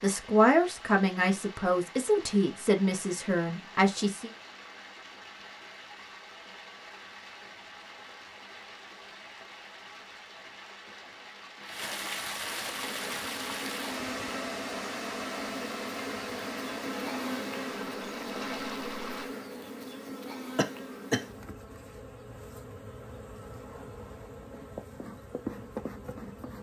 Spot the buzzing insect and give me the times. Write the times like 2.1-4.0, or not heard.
12.7-26.5.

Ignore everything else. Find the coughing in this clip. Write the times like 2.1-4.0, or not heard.
20.6-21.2.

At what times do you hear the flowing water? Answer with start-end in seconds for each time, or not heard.
0.0-19.3.